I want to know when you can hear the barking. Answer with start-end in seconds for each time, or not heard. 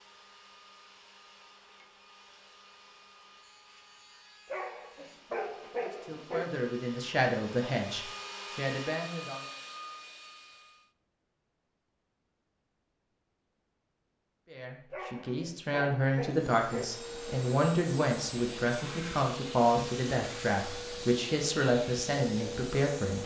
4.5-6.5, 14.9-16.9.